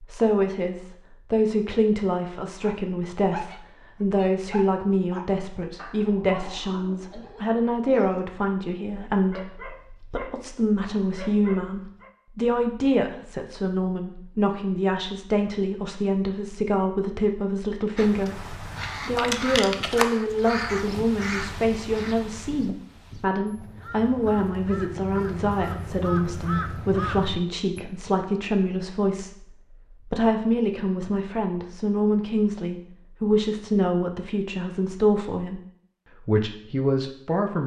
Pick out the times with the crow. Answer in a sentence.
You can hear the crow from 17.9 to 27.8 s.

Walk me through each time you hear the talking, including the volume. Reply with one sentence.
You can hear the talking from 0.0 to 35.6 s, at a steady volume; and briefly from 36.2 to 37.6 s.